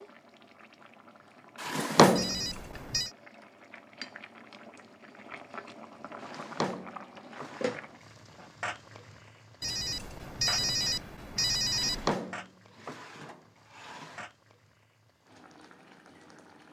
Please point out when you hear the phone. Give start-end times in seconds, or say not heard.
2.1-3.1, 9.6-12.2.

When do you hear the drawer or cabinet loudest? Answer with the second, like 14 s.
2 s.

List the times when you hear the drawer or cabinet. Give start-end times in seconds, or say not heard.
1.6-2.4, 6.2-7.8, 11.7-14.2.